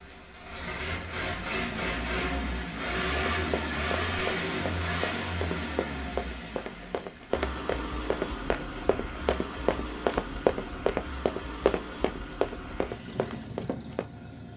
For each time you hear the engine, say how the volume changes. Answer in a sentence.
You can hear the engine from 0.0 to 14.5 s, getting quieter.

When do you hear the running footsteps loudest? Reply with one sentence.
The loudest moment of the running footsteps is at 10 seconds.